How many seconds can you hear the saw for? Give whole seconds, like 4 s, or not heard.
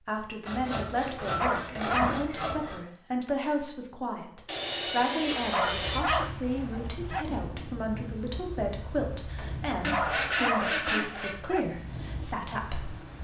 6 s.